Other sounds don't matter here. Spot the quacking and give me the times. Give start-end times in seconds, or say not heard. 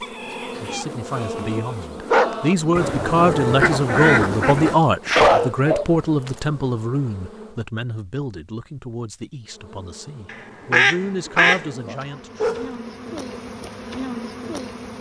2.8-4.8, 10.2-11.7.